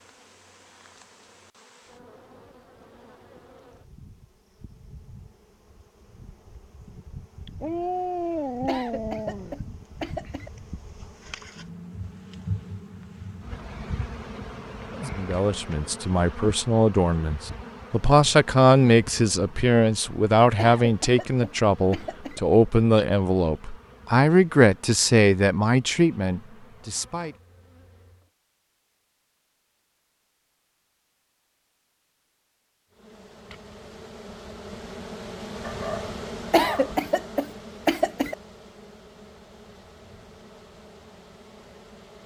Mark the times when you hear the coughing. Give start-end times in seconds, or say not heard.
8.7-10.5, 20.6-22.4, 36.5-38.4.